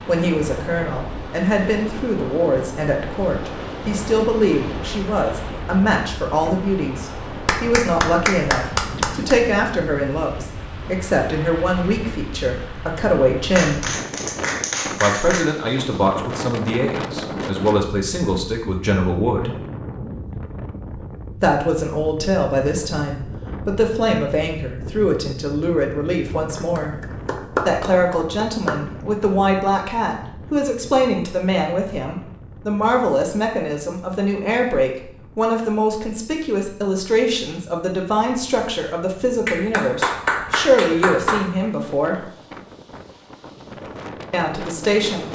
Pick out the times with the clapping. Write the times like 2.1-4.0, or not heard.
7.5-9.3, 13.6-15.4, 26.5-28.8, 39.5-41.5.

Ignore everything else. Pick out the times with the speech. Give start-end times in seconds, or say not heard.
0.0-13.8, 15.0-19.5, 21.4-26.9, 27.6-42.2, 44.3-45.3.